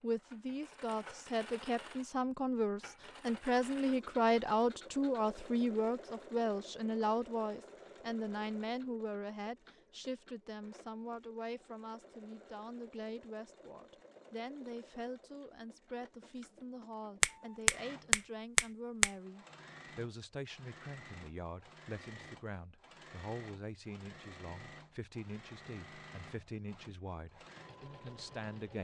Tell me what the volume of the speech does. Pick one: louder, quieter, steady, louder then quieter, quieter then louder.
quieter.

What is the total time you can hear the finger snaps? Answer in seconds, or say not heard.
2 s.